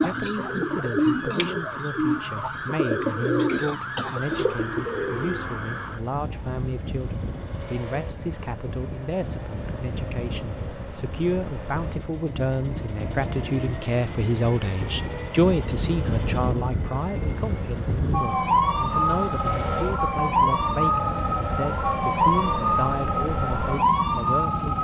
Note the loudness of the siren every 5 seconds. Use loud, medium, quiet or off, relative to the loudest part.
medium, quiet, quiet, loud, loud.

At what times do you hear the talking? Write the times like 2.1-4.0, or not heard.
0.0-24.8.